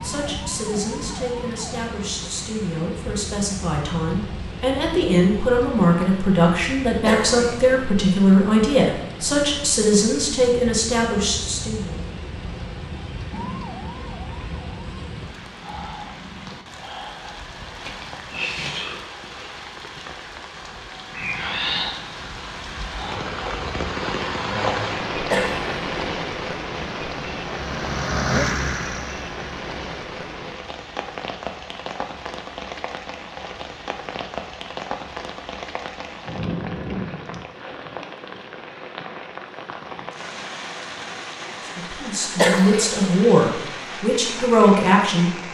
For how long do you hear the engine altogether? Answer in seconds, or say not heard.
3 s.